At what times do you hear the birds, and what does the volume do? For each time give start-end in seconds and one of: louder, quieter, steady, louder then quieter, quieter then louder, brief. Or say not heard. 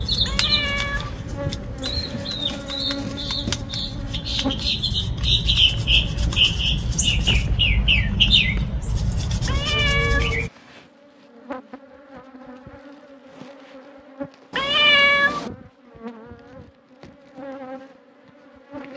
0.0-10.5 louder.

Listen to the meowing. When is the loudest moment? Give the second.
15 s.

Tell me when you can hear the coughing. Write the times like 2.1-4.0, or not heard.
not heard.